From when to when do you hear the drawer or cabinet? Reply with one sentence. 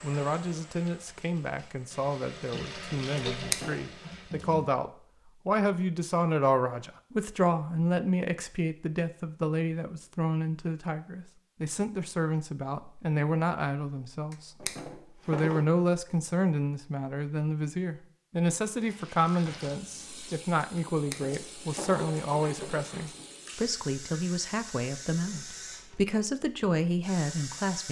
The drawer or cabinet can be heard from 3.1 to 3.9 s, from 14.3 to 15.7 s and from 20.8 to 23.2 s.